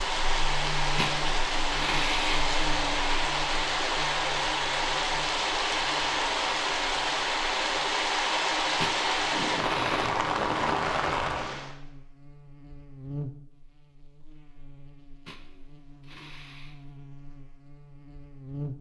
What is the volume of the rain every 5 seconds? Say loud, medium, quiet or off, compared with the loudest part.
loud, loud, loud, off.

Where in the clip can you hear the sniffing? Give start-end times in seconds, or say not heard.
0.9-2.5, 8.8-10.2, 15.2-16.9.